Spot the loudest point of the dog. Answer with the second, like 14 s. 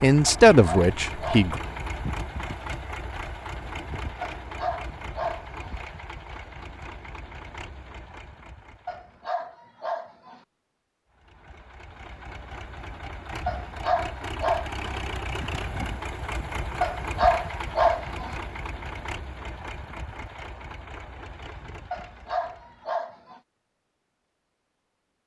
17 s.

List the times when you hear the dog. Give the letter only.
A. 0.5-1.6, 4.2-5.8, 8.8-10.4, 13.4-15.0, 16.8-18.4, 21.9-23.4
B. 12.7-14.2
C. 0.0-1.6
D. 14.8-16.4
A.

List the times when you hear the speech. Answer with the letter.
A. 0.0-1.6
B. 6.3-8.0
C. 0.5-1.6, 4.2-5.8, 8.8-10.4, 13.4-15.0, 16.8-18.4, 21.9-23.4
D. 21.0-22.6
A.